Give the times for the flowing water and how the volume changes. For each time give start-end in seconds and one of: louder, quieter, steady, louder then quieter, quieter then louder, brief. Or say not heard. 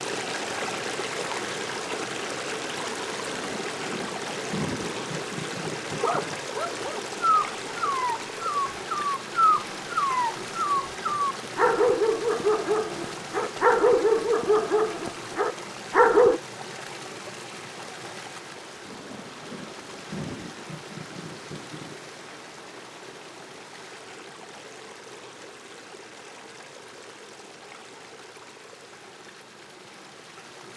0.0-30.7 quieter.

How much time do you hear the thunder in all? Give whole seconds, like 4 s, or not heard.
6 s.